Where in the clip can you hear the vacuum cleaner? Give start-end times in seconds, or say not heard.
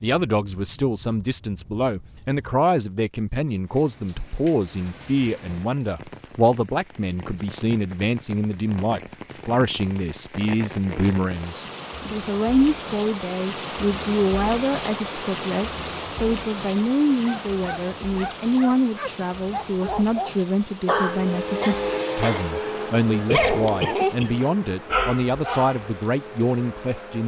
20.9-27.2.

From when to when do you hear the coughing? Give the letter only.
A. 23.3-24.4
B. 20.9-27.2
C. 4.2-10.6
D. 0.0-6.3
A.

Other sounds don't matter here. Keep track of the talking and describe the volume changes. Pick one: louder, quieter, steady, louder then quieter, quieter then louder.
steady.